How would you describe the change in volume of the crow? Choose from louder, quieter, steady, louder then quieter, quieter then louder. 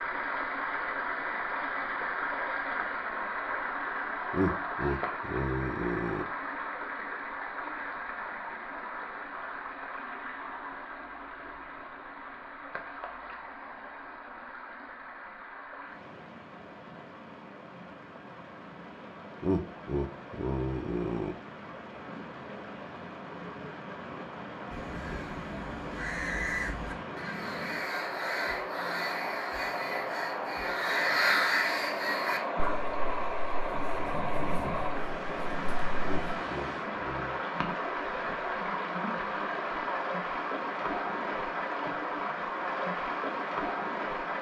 louder then quieter.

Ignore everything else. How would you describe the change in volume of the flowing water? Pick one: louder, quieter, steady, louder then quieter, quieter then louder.
quieter then louder.